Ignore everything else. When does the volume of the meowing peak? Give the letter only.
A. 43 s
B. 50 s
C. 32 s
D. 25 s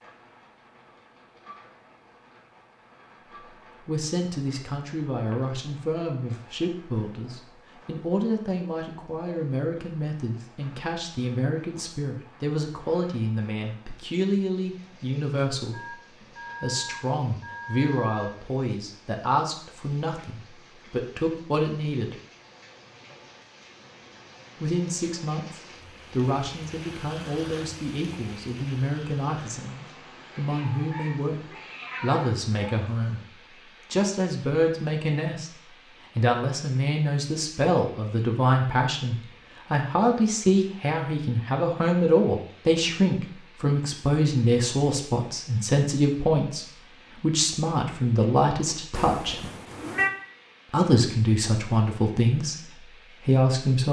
B.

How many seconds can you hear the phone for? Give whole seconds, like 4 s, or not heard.
3 s.